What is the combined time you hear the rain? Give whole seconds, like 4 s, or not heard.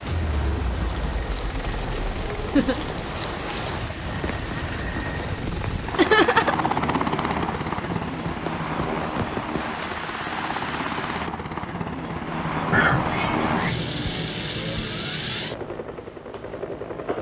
11 s.